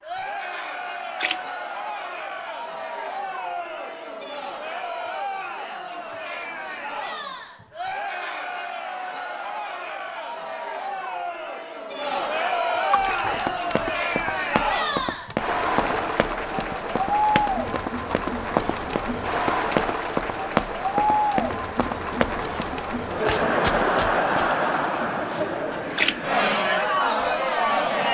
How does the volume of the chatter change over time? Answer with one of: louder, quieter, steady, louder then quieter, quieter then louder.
louder.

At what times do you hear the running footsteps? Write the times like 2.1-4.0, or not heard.
12.9-24.6.